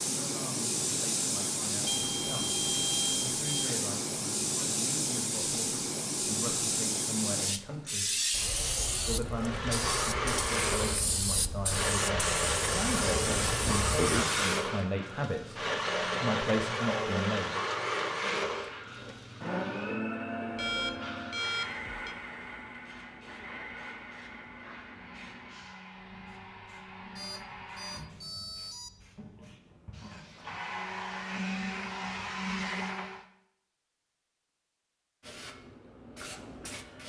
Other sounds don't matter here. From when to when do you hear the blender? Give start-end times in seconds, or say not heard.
9.2-33.2.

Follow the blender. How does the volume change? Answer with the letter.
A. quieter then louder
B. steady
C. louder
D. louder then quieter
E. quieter
A.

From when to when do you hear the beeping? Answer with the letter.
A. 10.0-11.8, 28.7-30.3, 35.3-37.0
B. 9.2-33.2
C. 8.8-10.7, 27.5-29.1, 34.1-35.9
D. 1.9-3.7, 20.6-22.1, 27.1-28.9
D.